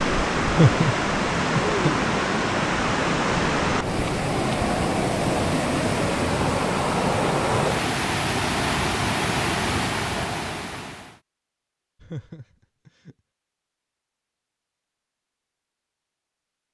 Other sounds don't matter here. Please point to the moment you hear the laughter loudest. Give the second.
1 s.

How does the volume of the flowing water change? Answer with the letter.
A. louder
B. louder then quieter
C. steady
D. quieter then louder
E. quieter
C.